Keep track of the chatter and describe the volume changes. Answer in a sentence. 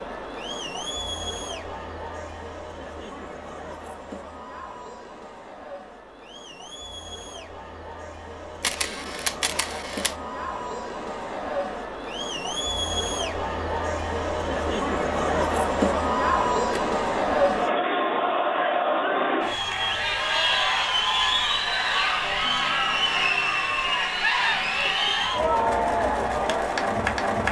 The loudness of the chatter goes up.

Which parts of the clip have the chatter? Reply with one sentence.
You can hear the chatter from 0.0 to 27.4 s.